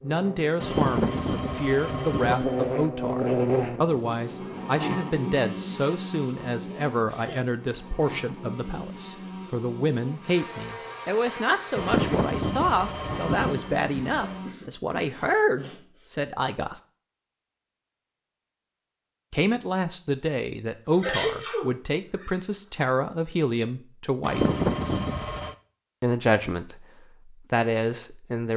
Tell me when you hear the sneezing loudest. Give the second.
21 s.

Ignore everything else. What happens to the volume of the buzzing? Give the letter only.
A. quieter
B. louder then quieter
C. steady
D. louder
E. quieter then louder
A.